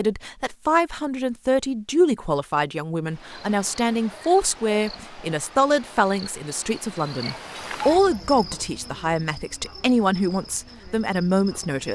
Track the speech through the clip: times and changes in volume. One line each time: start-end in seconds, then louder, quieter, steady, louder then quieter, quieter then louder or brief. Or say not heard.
0.0-11.8 steady.